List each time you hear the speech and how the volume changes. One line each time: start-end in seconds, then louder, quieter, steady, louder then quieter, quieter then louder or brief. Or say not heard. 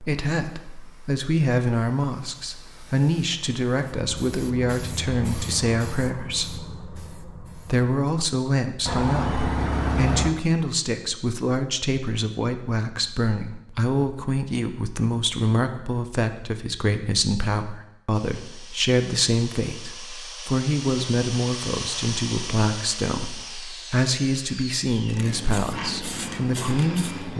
0.0-27.3 steady.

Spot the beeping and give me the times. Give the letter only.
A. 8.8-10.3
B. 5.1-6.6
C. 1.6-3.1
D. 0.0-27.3
A.